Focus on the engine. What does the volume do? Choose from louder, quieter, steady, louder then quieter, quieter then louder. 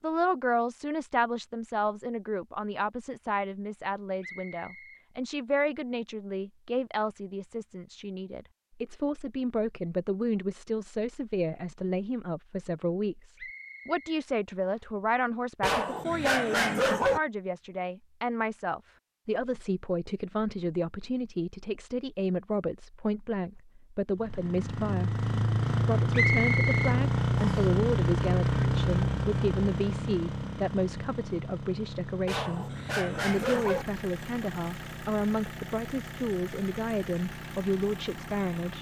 quieter.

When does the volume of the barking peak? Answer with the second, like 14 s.
17 s.